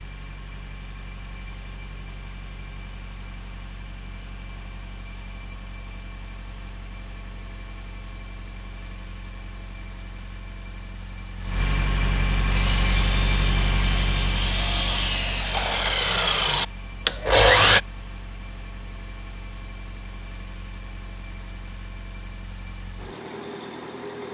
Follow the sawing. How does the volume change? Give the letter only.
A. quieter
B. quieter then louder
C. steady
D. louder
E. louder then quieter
D.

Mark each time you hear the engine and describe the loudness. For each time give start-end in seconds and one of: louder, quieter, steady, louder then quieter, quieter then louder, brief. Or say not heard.
0.0-24.2 louder then quieter.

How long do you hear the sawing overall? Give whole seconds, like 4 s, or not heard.
5 s.